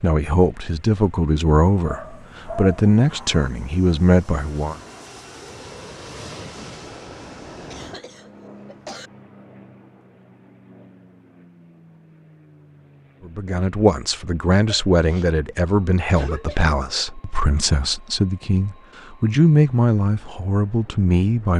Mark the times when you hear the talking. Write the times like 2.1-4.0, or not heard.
0.0-4.8, 13.2-21.5.